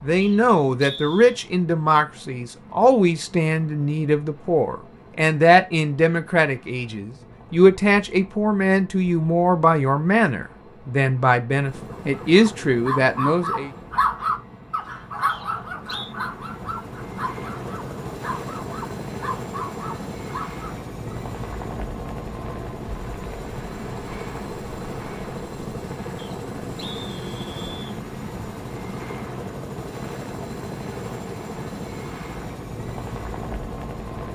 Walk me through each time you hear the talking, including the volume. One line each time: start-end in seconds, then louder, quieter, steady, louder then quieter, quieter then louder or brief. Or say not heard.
0.0-13.7 steady.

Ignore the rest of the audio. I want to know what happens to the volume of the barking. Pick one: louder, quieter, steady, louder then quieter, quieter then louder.
quieter.